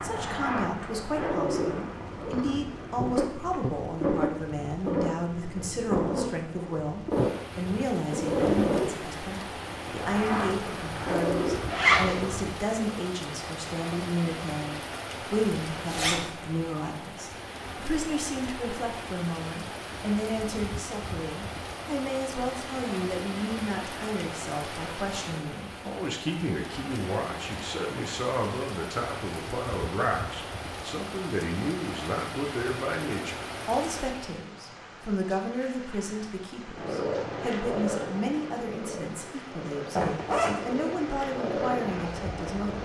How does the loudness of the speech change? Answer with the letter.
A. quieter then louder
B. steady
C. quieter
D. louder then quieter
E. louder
B.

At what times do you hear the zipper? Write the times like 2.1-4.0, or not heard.
11.7-12.2, 15.7-16.2, 40.0-40.8.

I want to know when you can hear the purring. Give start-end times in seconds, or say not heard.
0.0-12.5, 36.8-42.8.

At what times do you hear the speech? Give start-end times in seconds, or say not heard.
0.0-42.8.